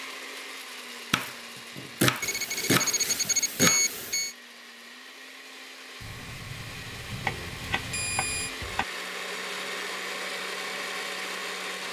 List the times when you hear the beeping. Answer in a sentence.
You can hear the beeping from 2.2 to 4.3 s and from 6.0 to 8.5 s.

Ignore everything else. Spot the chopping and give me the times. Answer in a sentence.
The chopping can be heard from 1.1 to 3.9 s and from 7.2 to 8.8 s.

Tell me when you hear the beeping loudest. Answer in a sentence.
The loudest moment of the beeping is at 4 seconds.